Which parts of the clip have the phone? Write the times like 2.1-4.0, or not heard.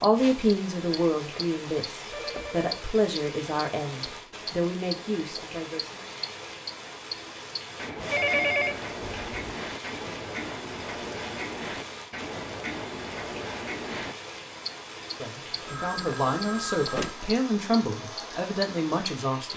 2.1-2.9, 8.0-9.5, 15.7-17.2.